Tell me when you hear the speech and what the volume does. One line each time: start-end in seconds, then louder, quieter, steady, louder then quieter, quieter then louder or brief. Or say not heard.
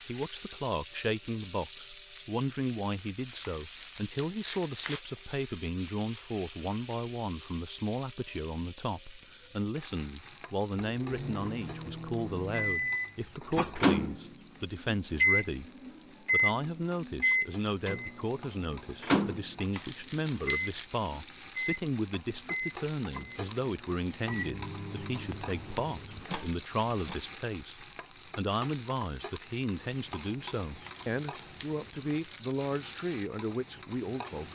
0.1-34.4 steady.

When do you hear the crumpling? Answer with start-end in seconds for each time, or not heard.
3.4-5.0, 19.7-20.9, 30.8-31.8.